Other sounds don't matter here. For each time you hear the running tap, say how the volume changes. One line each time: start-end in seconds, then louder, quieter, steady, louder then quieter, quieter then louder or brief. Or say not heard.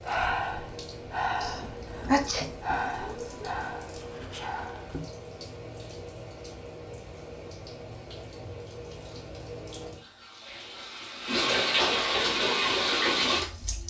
0.0-13.8 louder.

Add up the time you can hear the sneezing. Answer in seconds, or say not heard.
2 s.